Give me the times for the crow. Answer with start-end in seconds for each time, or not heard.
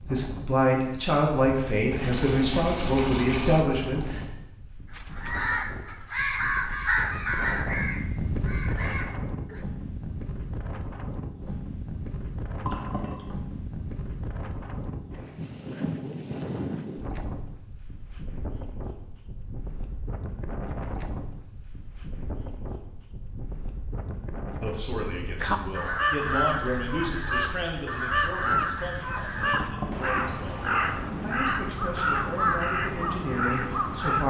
5.0-9.6, 25.4-34.2.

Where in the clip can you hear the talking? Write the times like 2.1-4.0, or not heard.
0.0-4.2, 24.5-34.2.